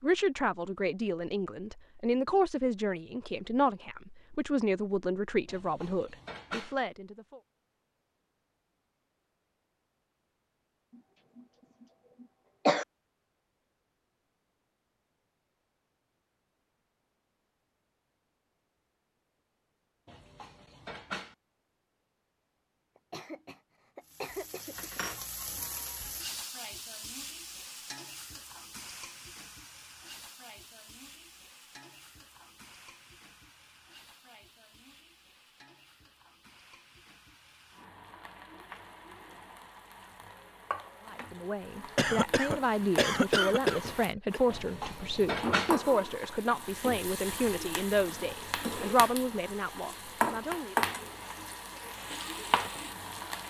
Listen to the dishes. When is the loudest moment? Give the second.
45 s.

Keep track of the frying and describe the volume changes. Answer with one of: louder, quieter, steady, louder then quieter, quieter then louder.
quieter then louder.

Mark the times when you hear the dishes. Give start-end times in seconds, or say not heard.
5.5-6.8, 20.1-21.4, 44.5-45.8.